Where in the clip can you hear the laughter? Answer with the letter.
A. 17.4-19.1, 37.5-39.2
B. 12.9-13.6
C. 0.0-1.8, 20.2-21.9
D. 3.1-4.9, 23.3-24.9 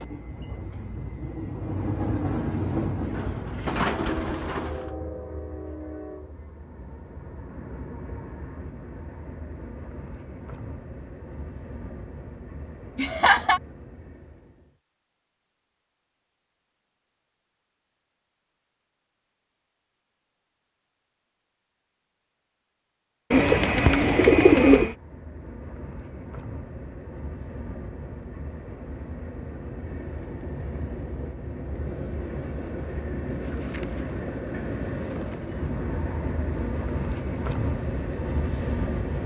B.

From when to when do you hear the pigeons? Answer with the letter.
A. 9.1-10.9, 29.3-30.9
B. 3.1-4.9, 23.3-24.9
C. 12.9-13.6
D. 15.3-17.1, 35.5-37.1
B.